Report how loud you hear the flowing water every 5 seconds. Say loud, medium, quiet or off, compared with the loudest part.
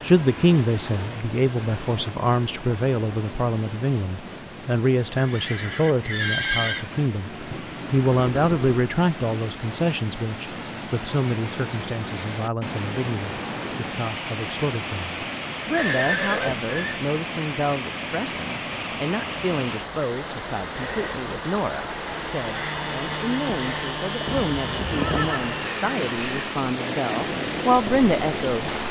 medium, medium, loud, loud, loud, loud.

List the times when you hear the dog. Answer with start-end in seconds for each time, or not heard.
not heard.